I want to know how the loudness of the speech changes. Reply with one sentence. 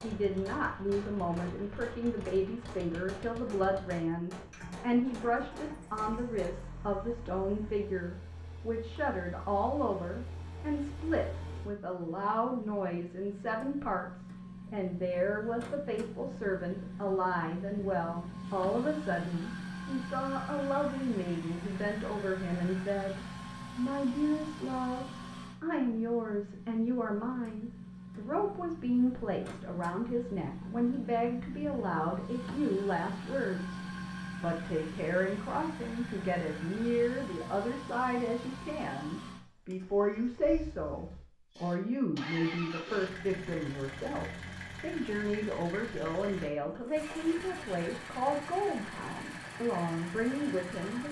The volume of the speech stays about the same.